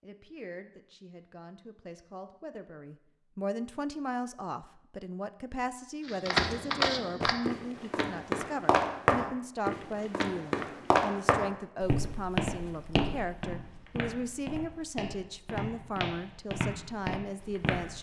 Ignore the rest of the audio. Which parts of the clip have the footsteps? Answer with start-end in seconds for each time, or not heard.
6.0-17.9.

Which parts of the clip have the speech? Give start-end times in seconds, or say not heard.
0.0-17.9.